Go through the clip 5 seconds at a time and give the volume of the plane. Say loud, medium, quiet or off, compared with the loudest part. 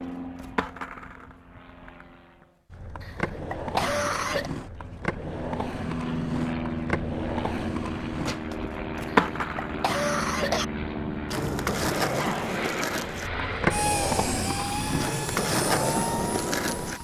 medium, loud, loud, loud.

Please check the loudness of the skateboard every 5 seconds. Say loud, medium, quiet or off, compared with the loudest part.
medium, loud, loud, loud.